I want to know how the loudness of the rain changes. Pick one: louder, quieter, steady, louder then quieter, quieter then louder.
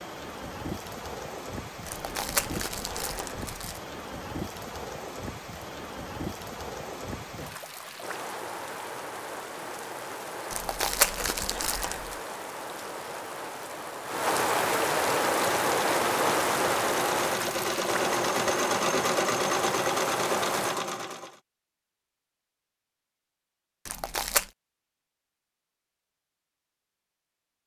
louder.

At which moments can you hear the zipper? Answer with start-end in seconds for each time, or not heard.
7.3-8.2.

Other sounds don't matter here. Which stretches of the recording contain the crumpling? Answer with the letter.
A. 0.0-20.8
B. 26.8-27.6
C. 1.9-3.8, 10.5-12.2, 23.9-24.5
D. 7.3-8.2
C.